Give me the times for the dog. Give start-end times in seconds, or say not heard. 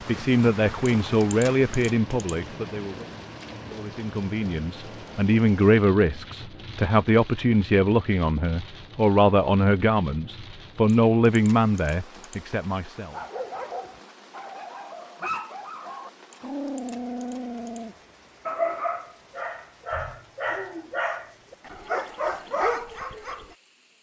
13.1-23.6.